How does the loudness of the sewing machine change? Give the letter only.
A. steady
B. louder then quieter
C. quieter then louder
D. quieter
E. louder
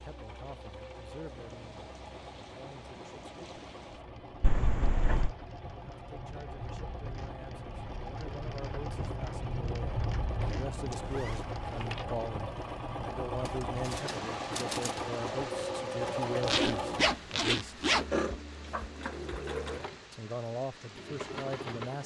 E.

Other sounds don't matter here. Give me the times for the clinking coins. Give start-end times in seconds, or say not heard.
not heard.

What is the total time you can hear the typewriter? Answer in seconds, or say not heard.
2 s.